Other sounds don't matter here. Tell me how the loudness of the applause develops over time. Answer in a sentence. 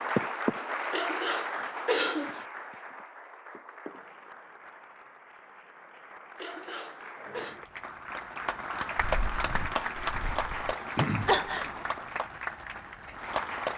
The volume of the applause goes down, then up.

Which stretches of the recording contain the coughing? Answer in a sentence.
You can hear the coughing from 0.9 to 2.5 s, from 6.3 to 7.6 s and from 11.2 to 11.7 s.